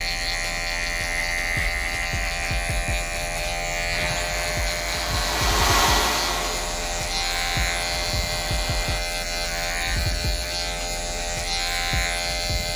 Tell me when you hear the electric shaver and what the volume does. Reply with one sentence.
The electric shaver can be heard from 0.0 to 12.7 s, at a steady volume.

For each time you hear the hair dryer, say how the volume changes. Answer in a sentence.
The hair dryer can be heard from 3.9 to 9.0 s, getting louder then quieter.